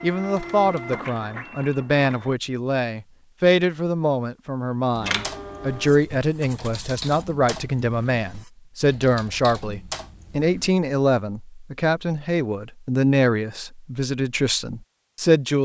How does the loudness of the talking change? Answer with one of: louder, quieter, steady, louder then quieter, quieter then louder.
steady.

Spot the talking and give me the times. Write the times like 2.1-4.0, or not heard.
0.0-15.6.